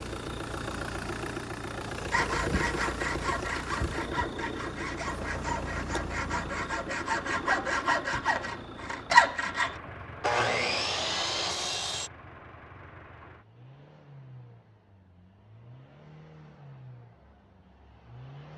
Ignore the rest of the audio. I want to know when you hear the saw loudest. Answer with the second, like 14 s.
9 s.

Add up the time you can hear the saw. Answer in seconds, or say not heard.
10 s.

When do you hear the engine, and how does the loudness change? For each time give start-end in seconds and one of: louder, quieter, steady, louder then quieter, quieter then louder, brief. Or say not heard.
0.0-18.5 quieter.